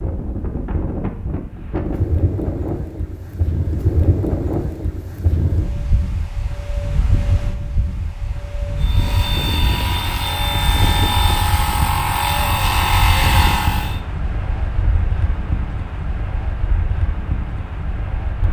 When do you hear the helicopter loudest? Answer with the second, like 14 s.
13 s.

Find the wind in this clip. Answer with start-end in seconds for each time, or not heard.
0.0-18.4.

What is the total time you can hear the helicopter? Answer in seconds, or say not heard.
5 s.